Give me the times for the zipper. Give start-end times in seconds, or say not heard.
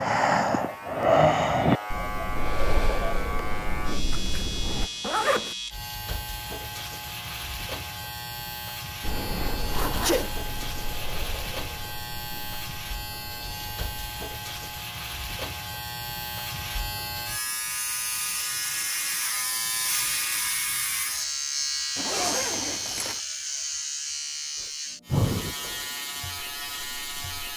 4.1-5.5, 9.6-10.9, 21.9-23.2.